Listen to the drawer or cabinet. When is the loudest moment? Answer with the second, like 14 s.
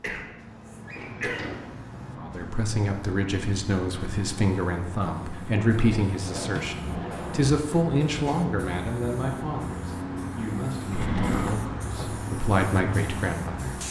11 s.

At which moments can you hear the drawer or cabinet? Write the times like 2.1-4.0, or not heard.
0.8-1.7, 5.7-7.5, 10.9-11.6.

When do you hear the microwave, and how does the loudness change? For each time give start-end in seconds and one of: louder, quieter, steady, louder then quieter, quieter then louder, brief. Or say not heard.
not heard.